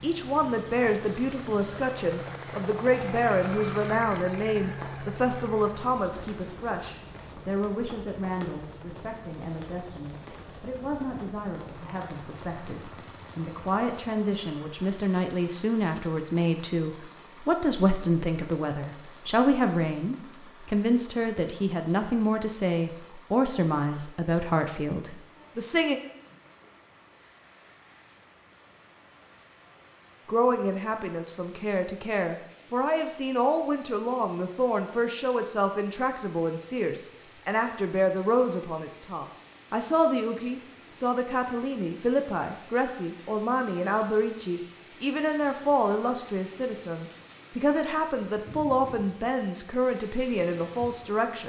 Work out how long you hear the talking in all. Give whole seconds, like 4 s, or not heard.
47 s.